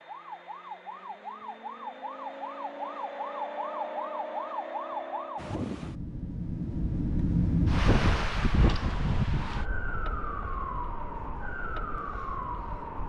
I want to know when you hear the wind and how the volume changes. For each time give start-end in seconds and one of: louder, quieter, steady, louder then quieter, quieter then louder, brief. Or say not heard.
5.3-13.0 louder then quieter.